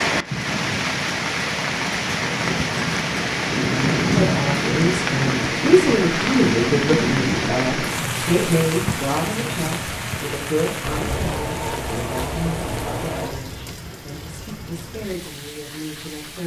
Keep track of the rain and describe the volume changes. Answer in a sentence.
The loudness of the rain goes down.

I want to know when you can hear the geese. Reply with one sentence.
You can hear the geese from 10.8 to 13.4 s.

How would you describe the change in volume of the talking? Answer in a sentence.
The loudness of the talking goes down.